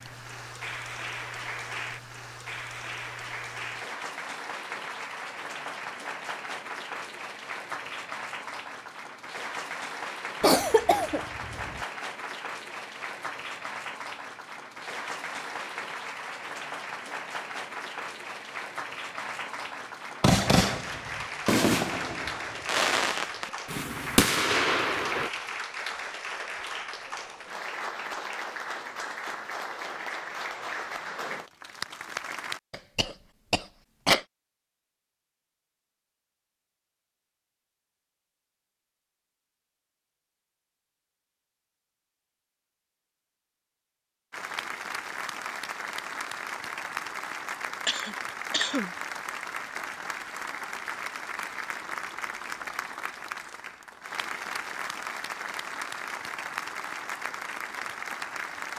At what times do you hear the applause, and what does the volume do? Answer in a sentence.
The applause can be heard from 0.0 to 32.6 s, at a steady volume; and from 44.3 to 58.7 s, at a steady volume.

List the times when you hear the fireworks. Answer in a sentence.
You can hear the fireworks from 20.2 to 25.3 s.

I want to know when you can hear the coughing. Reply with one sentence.
You can hear the coughing from 10.4 to 11.8 s, from 32.7 to 34.2 s and from 47.7 to 48.9 s.